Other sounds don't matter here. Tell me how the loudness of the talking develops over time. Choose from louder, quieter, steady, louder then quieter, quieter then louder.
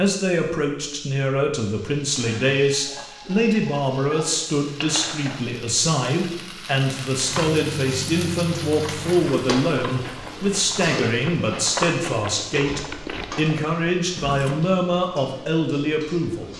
steady.